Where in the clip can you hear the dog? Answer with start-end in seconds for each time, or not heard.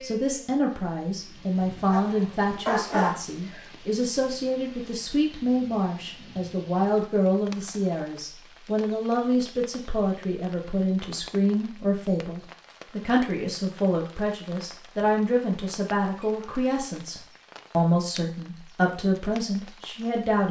1.9-3.6.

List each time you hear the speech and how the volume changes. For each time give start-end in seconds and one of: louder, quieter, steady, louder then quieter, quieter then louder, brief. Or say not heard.
0.0-20.4 steady.